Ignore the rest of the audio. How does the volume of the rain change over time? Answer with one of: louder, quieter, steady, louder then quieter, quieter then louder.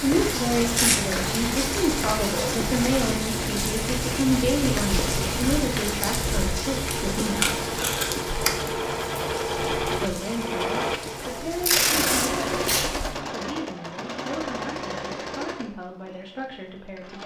quieter.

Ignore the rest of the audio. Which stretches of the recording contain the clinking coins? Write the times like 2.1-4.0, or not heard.
not heard.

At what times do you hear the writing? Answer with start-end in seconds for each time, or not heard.
not heard.